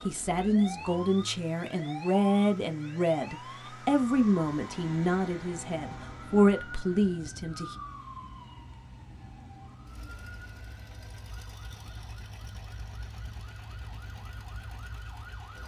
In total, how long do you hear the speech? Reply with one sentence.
The speech can be heard for 8 seconds in total.